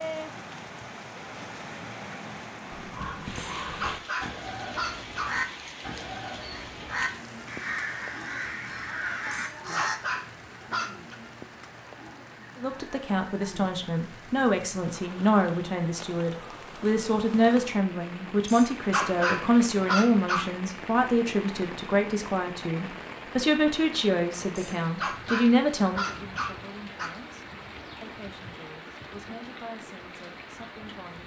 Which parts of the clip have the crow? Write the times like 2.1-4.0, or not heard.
2.7-10.0.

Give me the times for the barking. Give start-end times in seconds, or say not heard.
3.4-5.4, 9.3-11.2, 18.4-20.5, 24.6-27.1.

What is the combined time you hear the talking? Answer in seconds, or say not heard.
19 s.